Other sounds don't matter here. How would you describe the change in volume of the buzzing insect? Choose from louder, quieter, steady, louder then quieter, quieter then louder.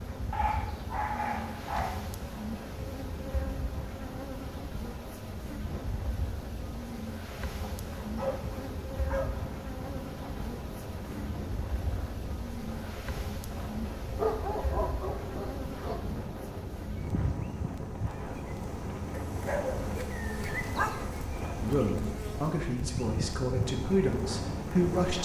steady.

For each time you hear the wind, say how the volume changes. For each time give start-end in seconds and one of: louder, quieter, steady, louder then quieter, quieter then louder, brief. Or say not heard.
0.0-25.2 louder.